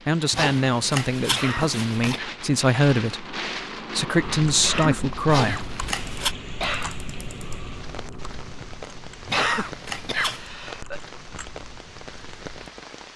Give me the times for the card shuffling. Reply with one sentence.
You can hear the card shuffling from 0.3 to 2.2 s, from 5.2 to 6.3 s and from 9.2 to 10.5 s.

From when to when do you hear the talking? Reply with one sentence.
You can hear the talking from 0.1 to 5.7 s.